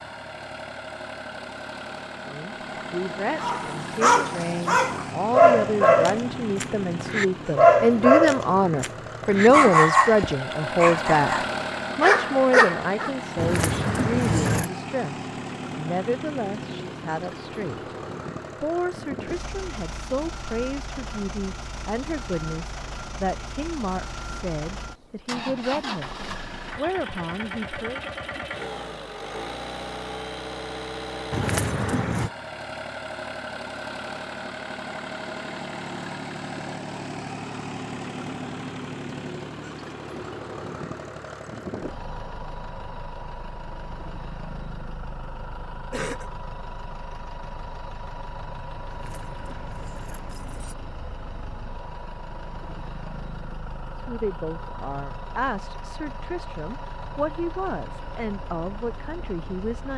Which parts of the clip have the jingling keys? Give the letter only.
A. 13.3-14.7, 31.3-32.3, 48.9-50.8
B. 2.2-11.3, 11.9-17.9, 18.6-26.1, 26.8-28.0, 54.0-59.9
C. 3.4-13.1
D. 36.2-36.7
A.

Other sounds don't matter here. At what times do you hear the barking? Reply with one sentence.
The barking can be heard from 3.4 to 13.1 s.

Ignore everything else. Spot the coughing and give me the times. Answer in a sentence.
You can hear the coughing from 45.9 to 46.4 s.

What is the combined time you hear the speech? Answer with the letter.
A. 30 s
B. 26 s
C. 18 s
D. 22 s
A.